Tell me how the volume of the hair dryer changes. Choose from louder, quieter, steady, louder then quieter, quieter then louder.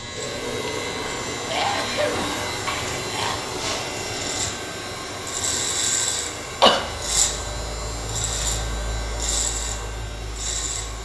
quieter.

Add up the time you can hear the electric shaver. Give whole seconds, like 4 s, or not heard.
11 s.